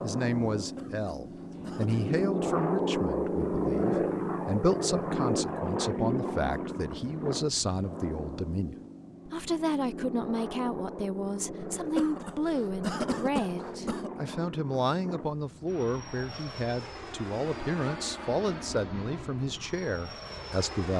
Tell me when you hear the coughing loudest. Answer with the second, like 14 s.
13 s.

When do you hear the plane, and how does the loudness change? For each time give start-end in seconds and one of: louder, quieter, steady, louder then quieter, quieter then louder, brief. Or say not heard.
0.0-20.9 quieter.